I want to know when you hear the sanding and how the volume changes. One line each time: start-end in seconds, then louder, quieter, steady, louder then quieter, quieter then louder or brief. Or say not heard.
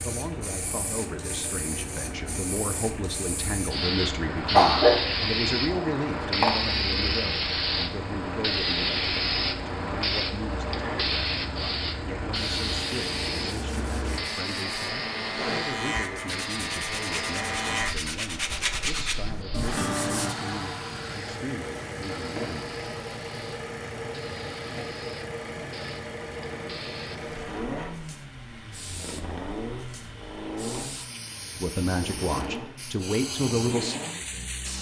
12.3-20.4 louder.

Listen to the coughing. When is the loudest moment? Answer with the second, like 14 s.
5 s.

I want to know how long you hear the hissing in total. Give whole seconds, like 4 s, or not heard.
35 s.